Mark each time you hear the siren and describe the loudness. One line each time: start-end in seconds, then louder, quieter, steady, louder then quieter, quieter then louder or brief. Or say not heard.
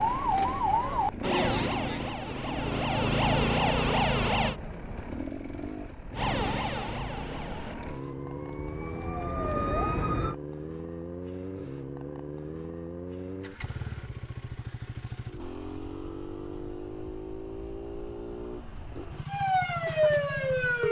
0.0-4.5 quieter then louder
6.2-10.3 quieter then louder
19.2-20.8 brief.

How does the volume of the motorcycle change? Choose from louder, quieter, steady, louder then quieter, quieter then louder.
steady.